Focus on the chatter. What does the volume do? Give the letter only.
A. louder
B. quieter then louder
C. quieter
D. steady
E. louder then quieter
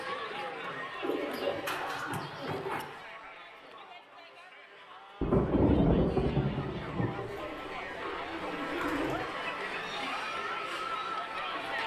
B.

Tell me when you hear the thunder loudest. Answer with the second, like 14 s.
6 s.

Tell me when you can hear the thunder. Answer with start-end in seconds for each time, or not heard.
5.2-7.1.